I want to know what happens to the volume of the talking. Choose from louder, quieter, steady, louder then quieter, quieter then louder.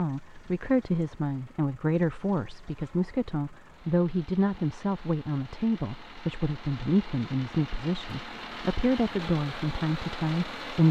steady.